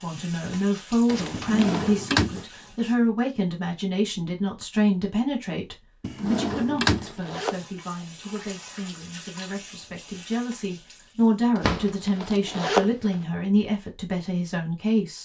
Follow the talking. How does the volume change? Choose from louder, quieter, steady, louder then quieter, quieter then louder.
quieter then louder.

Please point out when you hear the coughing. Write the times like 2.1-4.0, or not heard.
not heard.